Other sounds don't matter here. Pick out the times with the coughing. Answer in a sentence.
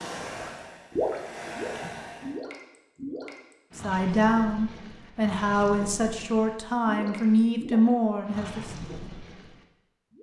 The coughing can't be heard in this clip.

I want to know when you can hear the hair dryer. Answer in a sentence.
You can hear the hair dryer from 0.0 to 2.4 s.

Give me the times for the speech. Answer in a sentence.
You can hear the speech from 3.8 to 8.7 s.